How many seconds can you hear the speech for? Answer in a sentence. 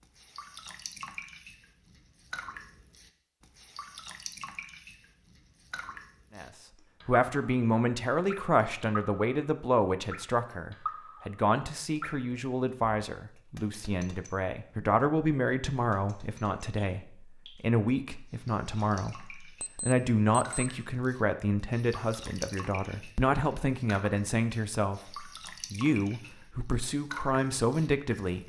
You can hear the speech for 22 seconds altogether.